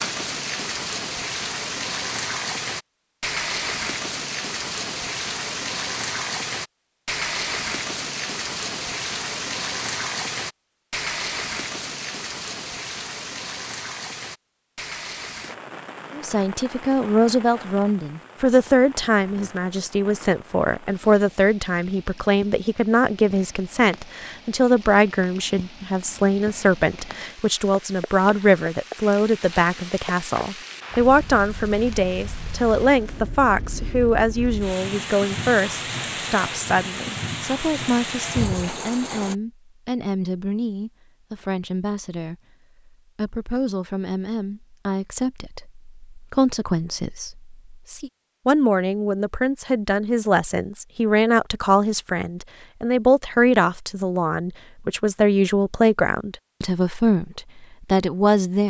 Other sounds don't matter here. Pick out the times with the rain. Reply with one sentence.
You can hear the rain from 0.0 to 39.4 s.